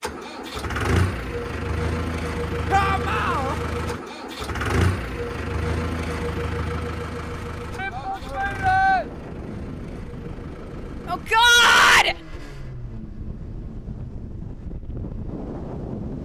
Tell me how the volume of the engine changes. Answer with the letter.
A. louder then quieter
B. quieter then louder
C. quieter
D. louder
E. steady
C.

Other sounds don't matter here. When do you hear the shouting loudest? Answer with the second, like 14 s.
12 s.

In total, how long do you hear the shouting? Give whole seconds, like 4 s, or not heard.
3 s.